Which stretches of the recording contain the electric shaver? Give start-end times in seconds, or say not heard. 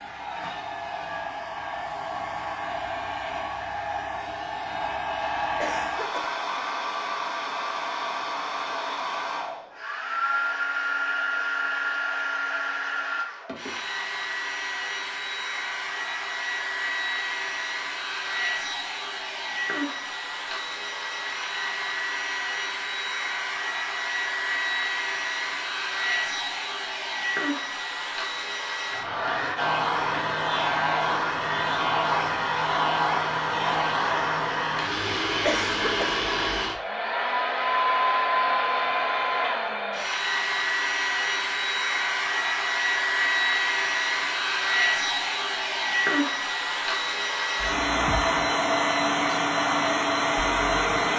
not heard.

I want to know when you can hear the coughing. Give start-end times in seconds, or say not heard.
5.5-6.3, 35.4-36.1.